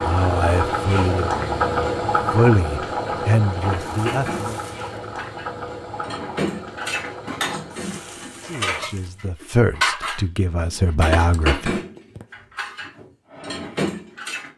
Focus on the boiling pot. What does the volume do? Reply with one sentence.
The loudness of the boiling pot goes down.